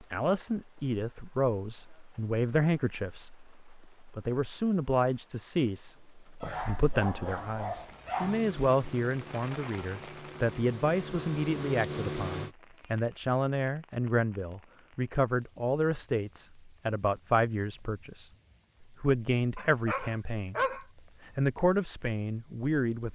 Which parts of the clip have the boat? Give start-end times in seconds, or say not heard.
8.2-12.6.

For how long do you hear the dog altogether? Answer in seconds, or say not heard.
3 s.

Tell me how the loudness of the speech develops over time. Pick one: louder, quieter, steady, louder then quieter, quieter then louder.
steady.